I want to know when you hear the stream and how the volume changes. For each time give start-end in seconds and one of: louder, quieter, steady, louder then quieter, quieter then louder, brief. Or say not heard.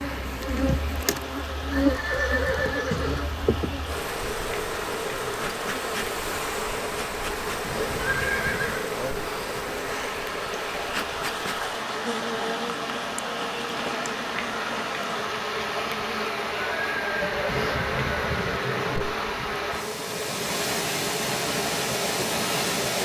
0.0-22.9 louder.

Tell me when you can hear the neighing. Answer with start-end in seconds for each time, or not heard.
1.7-3.2, 8.0-8.8, 16.7-19.1.